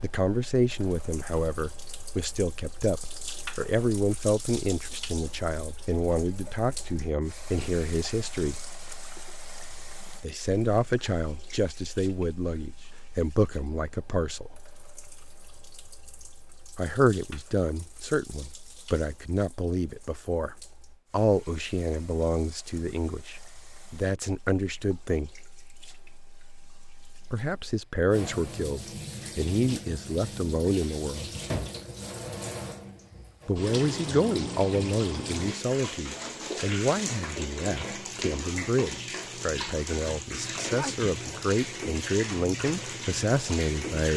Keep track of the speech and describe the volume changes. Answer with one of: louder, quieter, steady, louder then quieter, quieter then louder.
steady.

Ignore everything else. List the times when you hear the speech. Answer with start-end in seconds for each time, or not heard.
0.0-8.6, 10.2-14.6, 16.8-25.4, 27.3-31.3, 33.5-44.1.